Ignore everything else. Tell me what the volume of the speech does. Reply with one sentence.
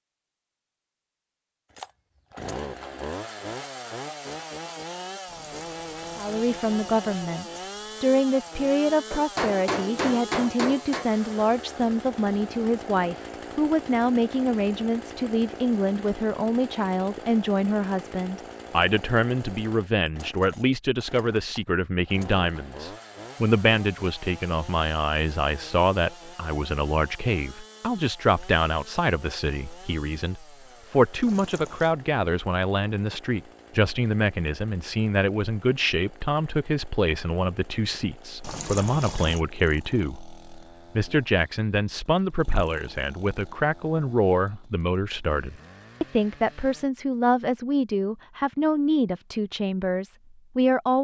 The volume of the speech stays about the same.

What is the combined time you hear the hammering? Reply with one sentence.
The hammering can be heard for 2 seconds in total.